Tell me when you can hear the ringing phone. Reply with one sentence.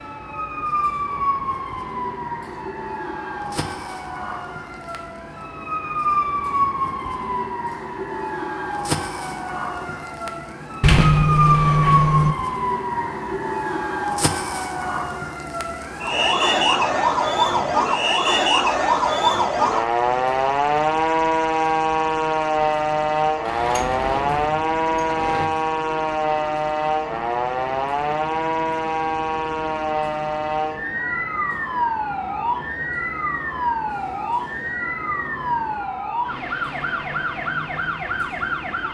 You can't hear the ringing phone here.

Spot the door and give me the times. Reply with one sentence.
You can hear the door from 10.8 to 12.3 s and from 23.4 to 25.5 s.